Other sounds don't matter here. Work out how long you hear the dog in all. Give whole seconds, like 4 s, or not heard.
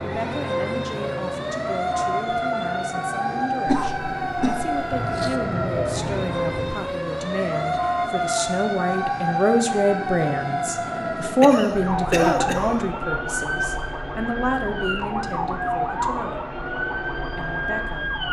not heard.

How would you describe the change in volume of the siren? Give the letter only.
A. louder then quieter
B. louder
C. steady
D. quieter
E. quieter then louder
C.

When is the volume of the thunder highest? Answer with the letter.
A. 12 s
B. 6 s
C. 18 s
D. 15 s
B.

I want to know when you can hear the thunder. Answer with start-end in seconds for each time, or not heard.
4.9-7.0.